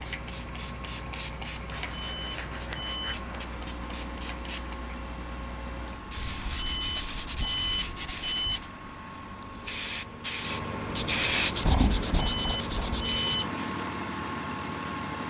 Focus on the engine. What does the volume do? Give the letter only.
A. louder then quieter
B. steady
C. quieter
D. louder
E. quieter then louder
D.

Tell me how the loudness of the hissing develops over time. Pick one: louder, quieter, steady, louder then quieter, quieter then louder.
louder.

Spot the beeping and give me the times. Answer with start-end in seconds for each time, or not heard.
1.9-3.2, 6.5-8.6, 12.2-13.5.